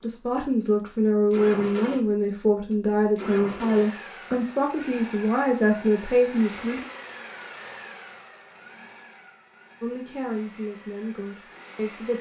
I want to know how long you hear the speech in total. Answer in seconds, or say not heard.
9 s.